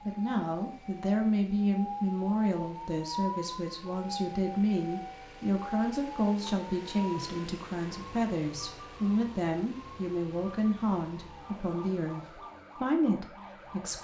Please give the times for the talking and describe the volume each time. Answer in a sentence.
The talking can be heard from 0.1 to 13.9 s, at a steady volume.